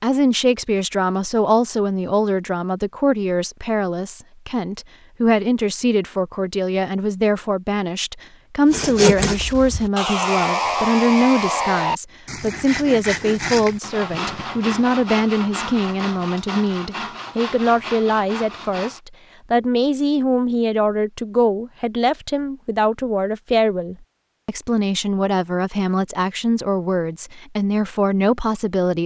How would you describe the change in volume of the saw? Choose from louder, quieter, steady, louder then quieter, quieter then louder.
quieter.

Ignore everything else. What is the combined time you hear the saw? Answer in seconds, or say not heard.
10 s.